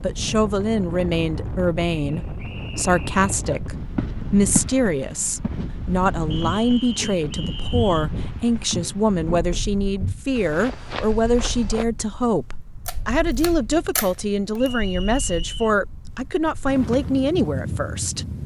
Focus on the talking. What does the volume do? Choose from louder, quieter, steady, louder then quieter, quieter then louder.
steady.